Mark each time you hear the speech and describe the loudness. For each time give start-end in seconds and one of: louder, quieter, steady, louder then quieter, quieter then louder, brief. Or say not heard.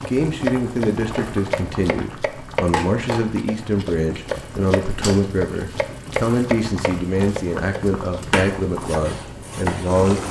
0.1-10.2 steady.